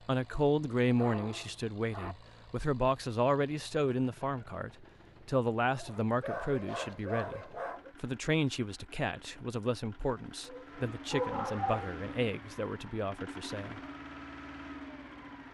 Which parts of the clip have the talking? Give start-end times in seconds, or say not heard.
0.1-13.8.